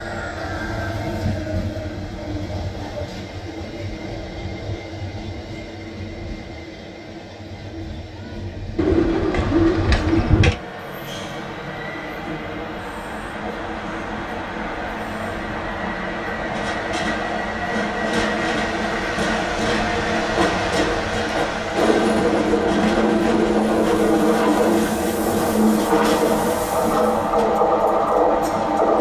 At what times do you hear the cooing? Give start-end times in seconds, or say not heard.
8.8-10.6.